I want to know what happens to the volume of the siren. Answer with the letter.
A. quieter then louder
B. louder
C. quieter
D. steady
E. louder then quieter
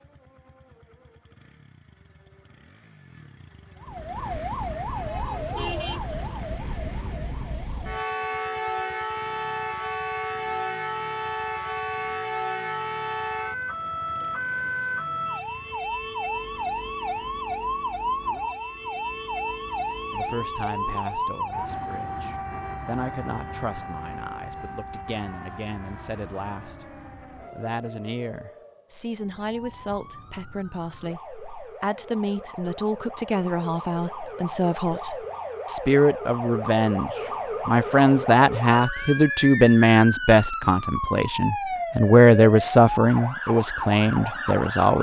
A.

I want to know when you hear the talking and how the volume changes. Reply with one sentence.
The talking can be heard from 20.1 to 44.9 s, getting louder.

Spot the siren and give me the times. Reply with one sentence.
You can hear the siren from 3.8 to 44.9 s.